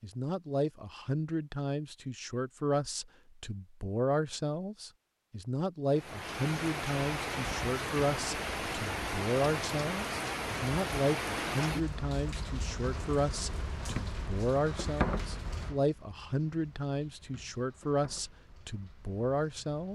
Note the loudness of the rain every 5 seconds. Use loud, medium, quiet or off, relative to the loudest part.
off, loud, loud, medium.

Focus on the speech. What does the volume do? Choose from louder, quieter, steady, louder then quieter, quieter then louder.
steady.